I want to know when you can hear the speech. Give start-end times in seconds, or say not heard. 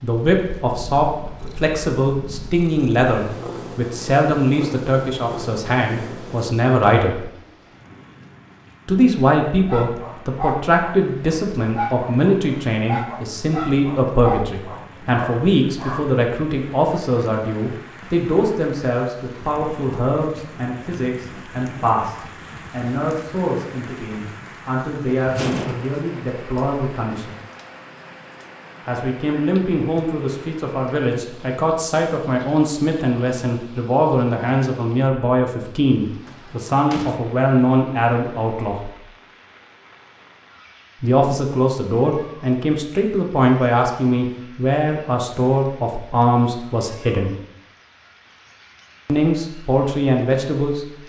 0.0-7.3, 8.8-27.4, 28.9-38.9, 41.0-47.3, 49.0-50.9.